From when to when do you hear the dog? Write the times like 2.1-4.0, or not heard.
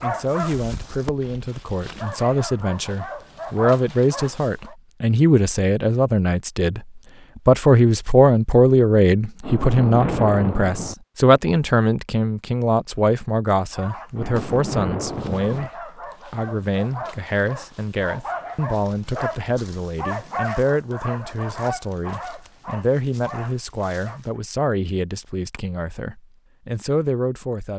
0.0-4.8, 13.7-24.4.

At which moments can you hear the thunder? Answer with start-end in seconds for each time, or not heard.
9.4-10.9, 14.2-15.7.